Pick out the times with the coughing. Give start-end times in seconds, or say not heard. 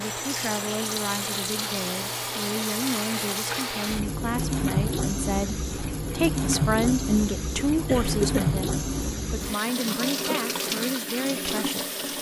7.8-8.4.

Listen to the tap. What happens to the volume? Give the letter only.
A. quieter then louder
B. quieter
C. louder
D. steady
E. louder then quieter
D.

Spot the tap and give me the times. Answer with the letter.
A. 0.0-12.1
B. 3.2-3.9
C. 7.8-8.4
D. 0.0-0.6
A.